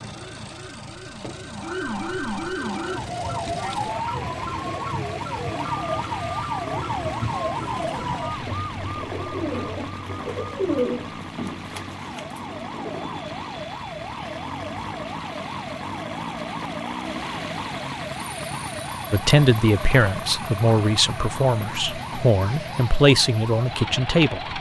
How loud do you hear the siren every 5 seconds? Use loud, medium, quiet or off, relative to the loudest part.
loud, loud, medium, medium, medium.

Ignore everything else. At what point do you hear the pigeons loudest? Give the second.
11 s.